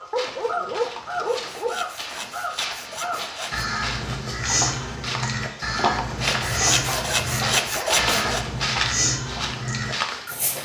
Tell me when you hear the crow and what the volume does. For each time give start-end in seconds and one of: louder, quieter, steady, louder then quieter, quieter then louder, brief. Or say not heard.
0.0-10.5 steady.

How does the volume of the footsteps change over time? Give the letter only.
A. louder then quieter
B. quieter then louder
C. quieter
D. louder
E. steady
D.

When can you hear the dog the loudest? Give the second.
1 s.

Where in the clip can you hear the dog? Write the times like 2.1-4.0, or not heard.
0.1-1.9, 6.4-8.4.